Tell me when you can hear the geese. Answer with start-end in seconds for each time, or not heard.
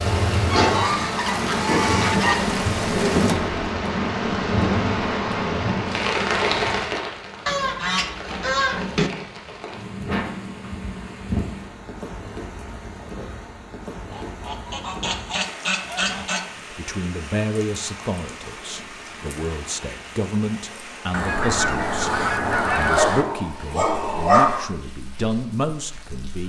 0.5-2.5, 7.5-9.1, 14.1-16.4, 21.1-23.2.